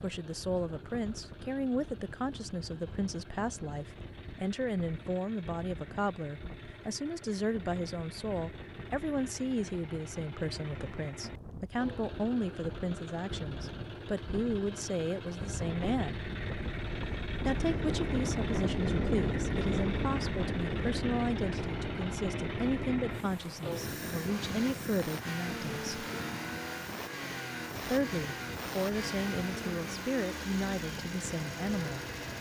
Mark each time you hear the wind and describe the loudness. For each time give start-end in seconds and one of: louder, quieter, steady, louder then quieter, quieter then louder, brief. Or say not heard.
0.0-32.3 louder then quieter.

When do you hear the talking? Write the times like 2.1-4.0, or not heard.
0.0-16.2, 17.4-26.1, 27.9-32.0.